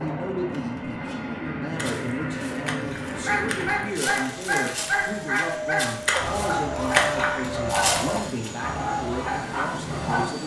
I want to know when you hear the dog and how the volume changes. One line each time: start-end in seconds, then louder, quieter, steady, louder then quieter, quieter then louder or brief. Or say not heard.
3.1-10.2 steady.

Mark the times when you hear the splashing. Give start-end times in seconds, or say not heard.
1.8-3.7, 6.0-7.4.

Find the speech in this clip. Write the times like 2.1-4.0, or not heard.
0.0-10.4.